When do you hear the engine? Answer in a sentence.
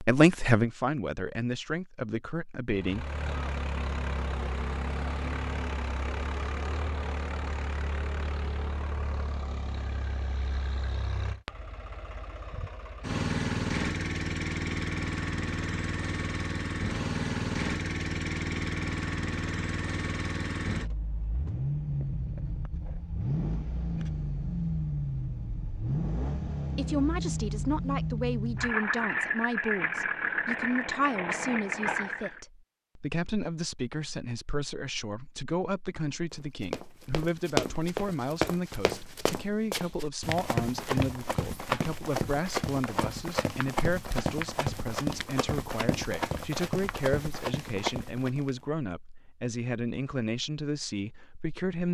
The engine can be heard from 2.7 to 32.4 s.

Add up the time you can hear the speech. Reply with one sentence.
You can hear the speech for 28 seconds altogether.